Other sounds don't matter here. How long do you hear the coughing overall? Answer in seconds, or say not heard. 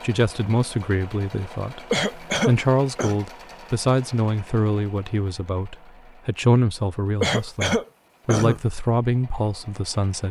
3 s.